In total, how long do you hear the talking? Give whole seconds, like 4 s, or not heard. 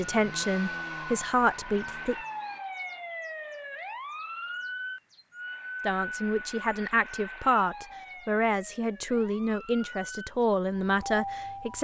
8 s.